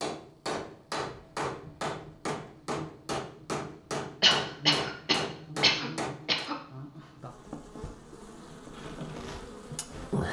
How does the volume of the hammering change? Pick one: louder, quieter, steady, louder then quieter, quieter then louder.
steady.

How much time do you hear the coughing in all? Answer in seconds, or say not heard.
2 s.